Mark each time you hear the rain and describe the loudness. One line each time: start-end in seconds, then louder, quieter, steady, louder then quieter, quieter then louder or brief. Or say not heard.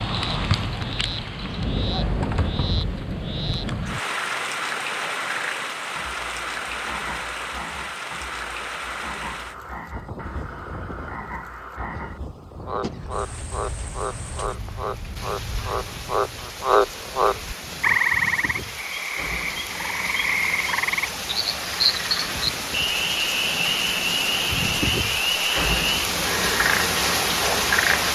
0.0-28.1 quieter then louder.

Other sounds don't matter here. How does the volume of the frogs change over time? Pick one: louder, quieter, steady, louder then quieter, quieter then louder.
louder.